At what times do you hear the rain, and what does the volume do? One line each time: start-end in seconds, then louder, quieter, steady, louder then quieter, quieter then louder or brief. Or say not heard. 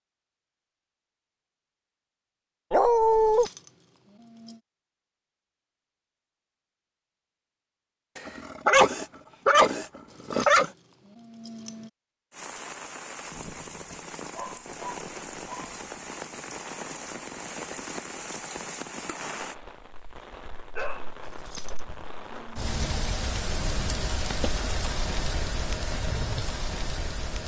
12.3-27.4 louder.